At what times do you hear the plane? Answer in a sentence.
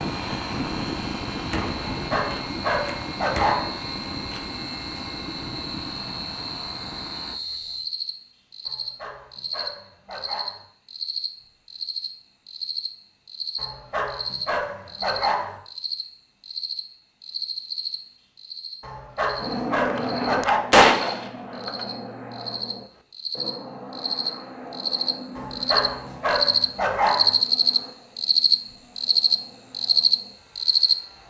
You can hear the plane from 0.0 to 7.4 s and from 19.4 to 31.2 s.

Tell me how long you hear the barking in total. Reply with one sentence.
You can hear the barking for 10 seconds altogether.